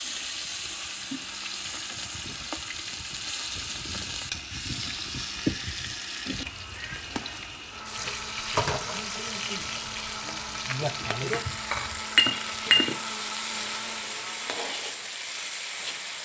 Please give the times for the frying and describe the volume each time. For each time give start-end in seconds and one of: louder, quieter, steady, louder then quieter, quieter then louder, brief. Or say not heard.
0.0-16.1 steady.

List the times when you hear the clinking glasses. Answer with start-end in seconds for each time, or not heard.
11.3-12.9.